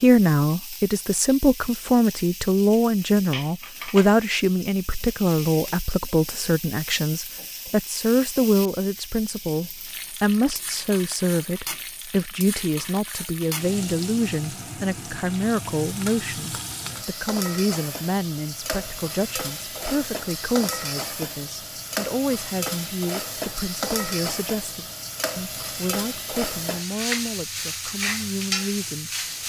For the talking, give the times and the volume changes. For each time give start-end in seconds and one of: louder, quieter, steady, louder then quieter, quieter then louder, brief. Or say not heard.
0.0-29.4 quieter.